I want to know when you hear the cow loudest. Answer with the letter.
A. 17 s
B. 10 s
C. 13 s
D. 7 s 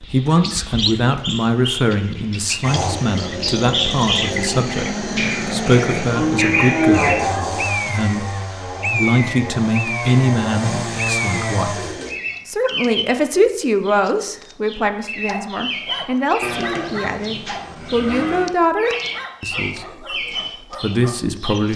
D.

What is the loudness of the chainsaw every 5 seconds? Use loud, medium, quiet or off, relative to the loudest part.
loud, loud, loud, off, off.